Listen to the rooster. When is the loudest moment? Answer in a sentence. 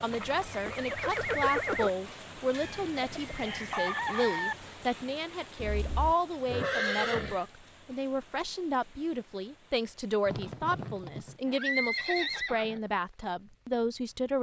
The volume of the rooster peaks at 4 seconds.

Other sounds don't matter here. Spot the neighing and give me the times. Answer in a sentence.
The neighing can be heard from 0.1 to 1.9 s, from 5.5 to 7.5 s and from 10.2 to 12.8 s.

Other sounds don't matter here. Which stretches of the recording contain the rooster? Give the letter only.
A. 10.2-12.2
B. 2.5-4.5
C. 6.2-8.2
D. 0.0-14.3
B.